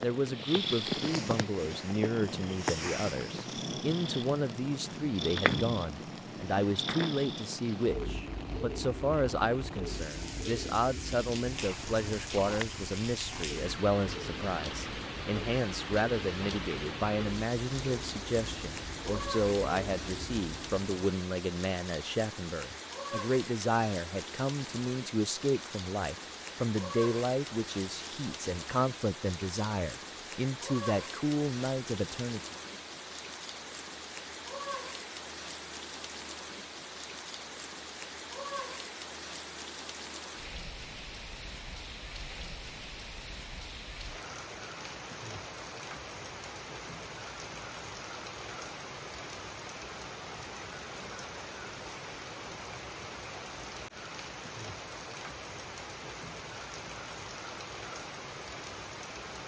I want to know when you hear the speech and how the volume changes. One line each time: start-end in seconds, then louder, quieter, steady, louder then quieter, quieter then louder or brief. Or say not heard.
0.0-32.5 steady.